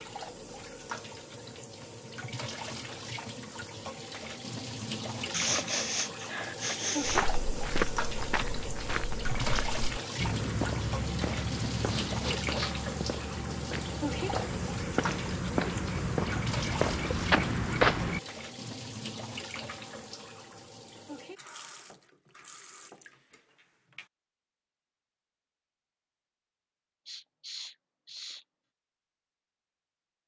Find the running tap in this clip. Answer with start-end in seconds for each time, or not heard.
0.0-24.1.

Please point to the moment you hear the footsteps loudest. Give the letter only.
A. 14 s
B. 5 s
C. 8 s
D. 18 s
D.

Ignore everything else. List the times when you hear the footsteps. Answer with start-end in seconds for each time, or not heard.
7.0-18.2.